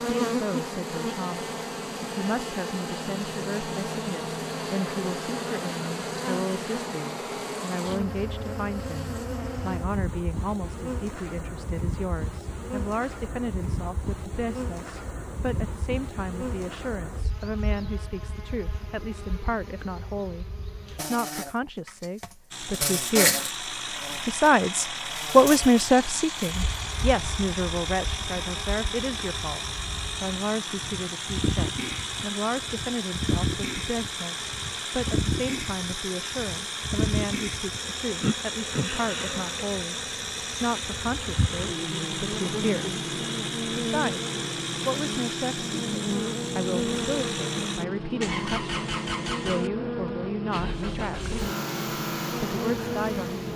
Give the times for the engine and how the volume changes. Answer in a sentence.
The engine can be heard from 22.5 to 53.5 s, at a steady volume.